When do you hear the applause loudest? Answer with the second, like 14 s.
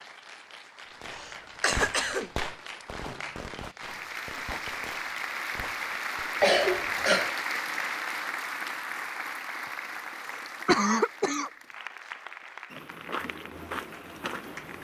7 s.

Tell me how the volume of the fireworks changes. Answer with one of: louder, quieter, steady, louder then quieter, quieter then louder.
quieter.